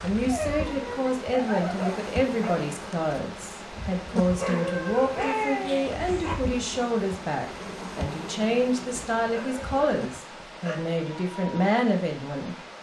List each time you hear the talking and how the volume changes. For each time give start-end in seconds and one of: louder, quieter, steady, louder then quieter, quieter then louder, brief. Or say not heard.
0.0-12.7 steady.